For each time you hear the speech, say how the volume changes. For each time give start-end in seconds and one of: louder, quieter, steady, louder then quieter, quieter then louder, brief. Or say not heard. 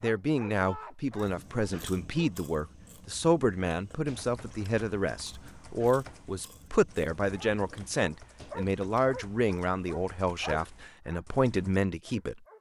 0.0-12.4 steady.